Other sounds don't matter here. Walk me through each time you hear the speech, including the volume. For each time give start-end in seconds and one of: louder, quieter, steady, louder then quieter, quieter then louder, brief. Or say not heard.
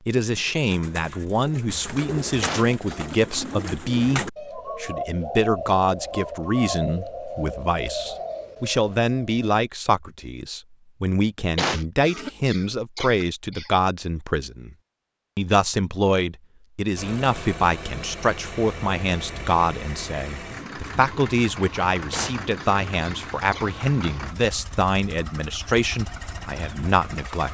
0.1-14.8 steady
15.3-27.4 steady.